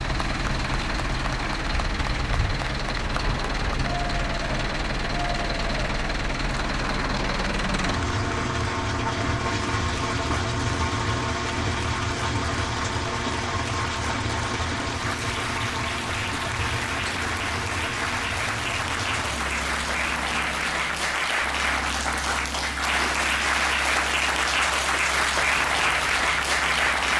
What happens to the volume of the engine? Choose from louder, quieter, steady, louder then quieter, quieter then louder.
quieter.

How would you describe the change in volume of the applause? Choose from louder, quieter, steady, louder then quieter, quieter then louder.
louder.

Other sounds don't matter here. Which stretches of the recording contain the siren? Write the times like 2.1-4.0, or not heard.
not heard.